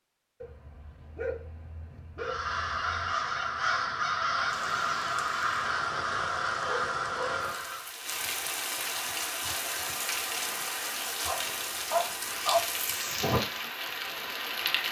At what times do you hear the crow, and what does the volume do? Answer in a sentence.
The crow can be heard from 1.9 to 8.0 s, at a steady volume.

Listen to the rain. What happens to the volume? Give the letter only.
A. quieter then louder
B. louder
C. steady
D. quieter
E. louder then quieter
B.